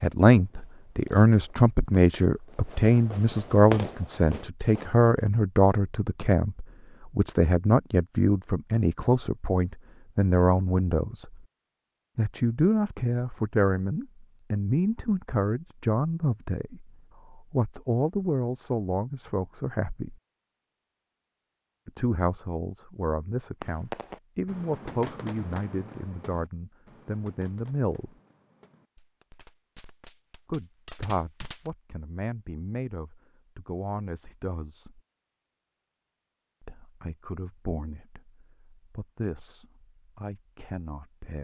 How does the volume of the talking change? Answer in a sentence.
The volume of the talking goes down.